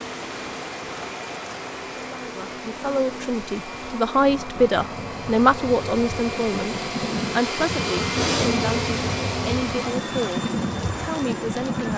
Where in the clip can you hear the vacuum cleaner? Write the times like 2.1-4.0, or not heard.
0.0-11.9.